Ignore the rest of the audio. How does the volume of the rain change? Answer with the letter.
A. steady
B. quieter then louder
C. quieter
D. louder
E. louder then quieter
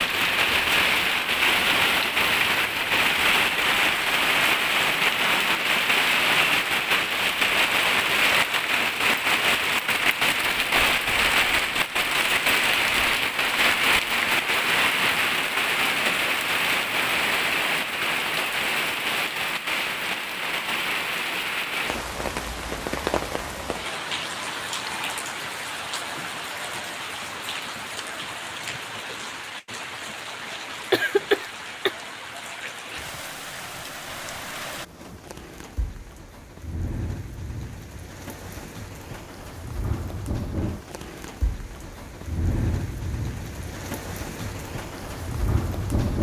C.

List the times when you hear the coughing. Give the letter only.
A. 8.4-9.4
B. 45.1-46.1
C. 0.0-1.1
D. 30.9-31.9
D.